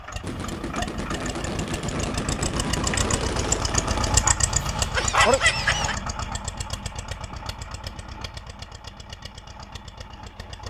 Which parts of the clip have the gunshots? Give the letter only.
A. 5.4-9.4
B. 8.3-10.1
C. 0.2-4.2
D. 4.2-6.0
C.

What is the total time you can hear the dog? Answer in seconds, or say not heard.
2 s.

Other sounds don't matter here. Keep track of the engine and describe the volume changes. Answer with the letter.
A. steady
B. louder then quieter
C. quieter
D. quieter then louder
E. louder
B.